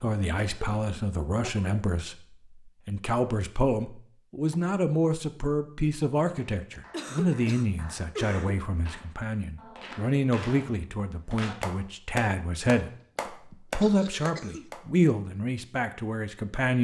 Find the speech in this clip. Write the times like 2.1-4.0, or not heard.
0.0-16.7.